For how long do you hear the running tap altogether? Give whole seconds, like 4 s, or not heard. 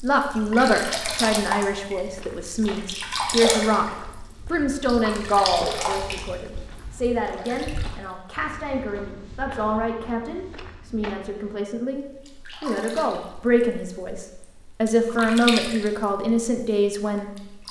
14 s.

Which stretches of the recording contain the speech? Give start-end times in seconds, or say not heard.
0.0-17.3.